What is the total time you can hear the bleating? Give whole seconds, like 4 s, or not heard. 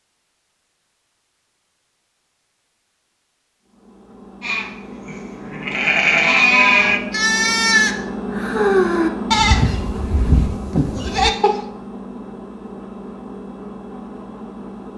7 s.